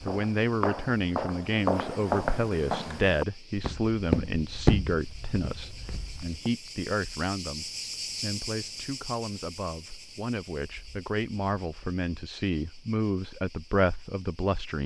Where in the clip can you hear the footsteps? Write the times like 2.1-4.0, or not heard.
0.0-6.5.